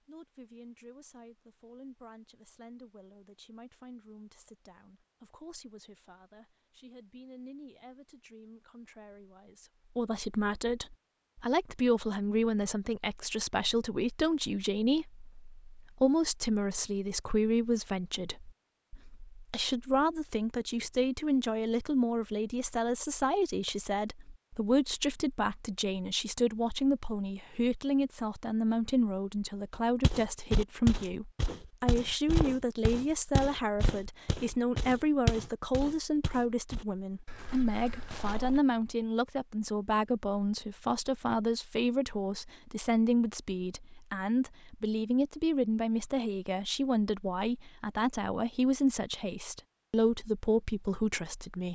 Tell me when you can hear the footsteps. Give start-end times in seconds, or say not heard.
29.8-38.6.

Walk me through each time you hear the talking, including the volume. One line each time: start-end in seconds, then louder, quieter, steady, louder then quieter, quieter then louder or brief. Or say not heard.
0.1-51.7 louder.